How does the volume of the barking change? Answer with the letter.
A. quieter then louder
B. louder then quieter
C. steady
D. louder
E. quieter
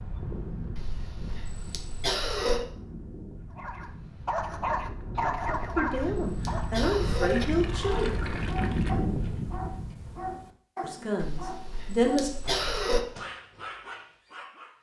E.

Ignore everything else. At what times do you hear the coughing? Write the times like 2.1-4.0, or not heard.
0.8-2.6, 5.5-7.5, 11.2-13.1.